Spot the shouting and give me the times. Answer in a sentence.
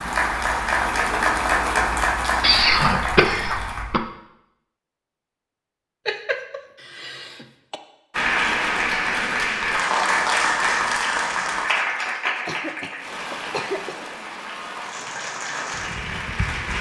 The shouting can't be heard in this clip.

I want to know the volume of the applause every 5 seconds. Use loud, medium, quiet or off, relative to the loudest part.
loud, loud, loud, medium.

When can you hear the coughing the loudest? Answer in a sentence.
The loudest moment of the coughing is at 3 seconds.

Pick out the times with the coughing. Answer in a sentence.
The coughing can be heard from 2.4 to 4.0 s, from 6.0 to 7.8 s and from 12.3 to 14.1 s.